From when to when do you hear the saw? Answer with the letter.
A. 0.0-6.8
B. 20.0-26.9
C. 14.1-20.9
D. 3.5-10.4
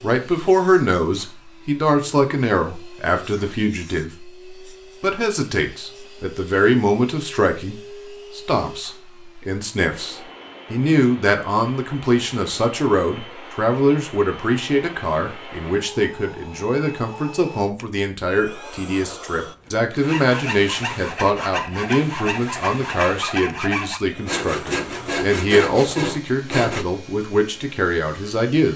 B.